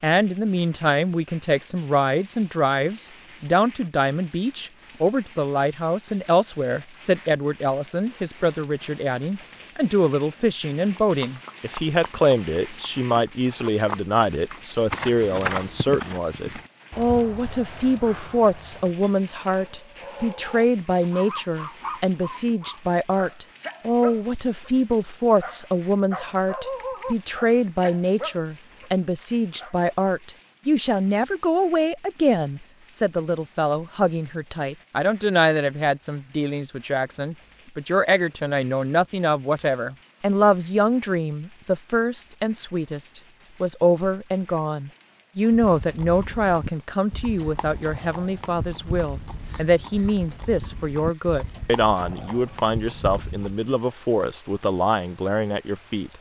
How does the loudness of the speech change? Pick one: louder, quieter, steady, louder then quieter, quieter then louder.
steady.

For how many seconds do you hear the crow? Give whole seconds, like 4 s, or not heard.
not heard.